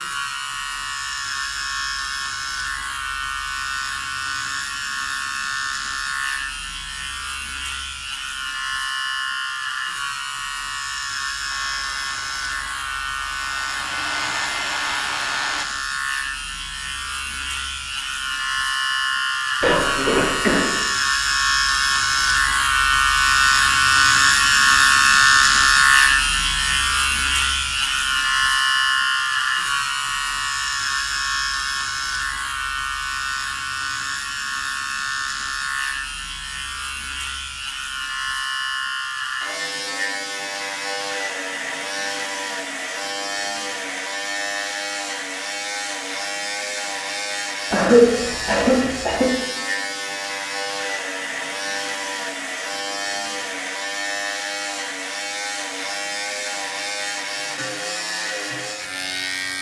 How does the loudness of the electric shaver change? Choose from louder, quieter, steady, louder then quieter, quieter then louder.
louder then quieter.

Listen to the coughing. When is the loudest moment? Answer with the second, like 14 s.
48 s.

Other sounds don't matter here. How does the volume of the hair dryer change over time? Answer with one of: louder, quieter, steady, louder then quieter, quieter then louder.
louder.